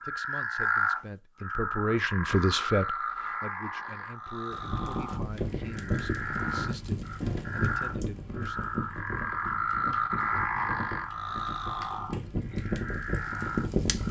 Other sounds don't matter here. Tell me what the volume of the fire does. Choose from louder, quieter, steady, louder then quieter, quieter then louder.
quieter then louder.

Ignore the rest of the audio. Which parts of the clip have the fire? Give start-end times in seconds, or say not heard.
4.5-14.0.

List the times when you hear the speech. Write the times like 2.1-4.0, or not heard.
0.0-8.7.